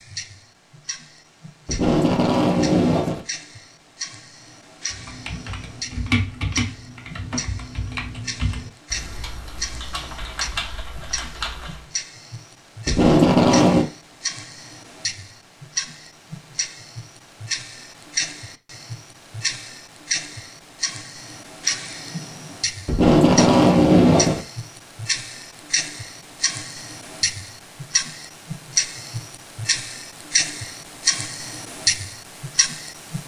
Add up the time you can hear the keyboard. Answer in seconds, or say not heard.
7 s.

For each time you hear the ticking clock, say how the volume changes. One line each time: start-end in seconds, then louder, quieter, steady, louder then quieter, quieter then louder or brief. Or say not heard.
0.0-33.2 louder.